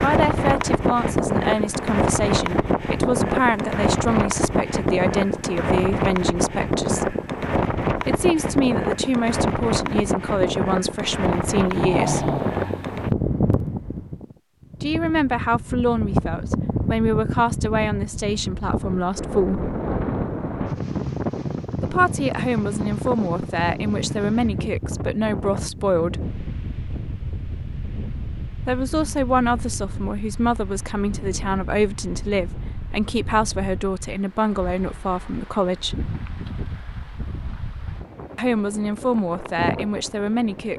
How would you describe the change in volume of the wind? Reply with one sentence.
The volume of the wind goes down.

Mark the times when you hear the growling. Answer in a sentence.
You can hear the growling from 11.6 to 13.1 s.